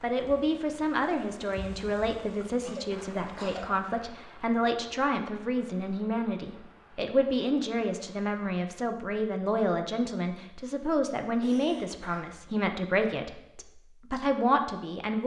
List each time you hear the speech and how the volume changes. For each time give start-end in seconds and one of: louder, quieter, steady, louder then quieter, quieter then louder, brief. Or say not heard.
0.0-15.2 steady.